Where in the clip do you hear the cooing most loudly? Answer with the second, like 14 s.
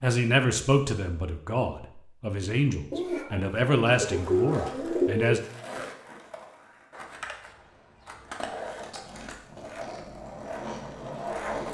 5 s.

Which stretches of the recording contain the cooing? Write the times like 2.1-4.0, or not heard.
2.9-5.4.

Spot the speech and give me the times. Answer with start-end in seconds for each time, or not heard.
0.0-5.4.